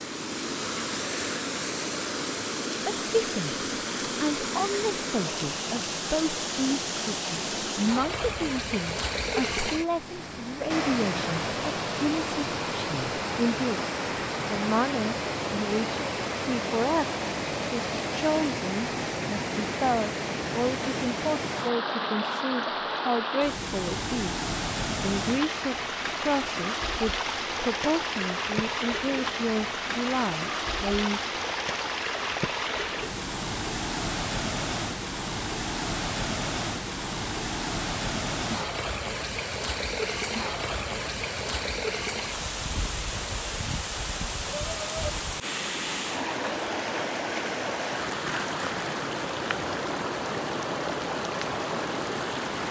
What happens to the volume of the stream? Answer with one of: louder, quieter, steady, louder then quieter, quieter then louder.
steady.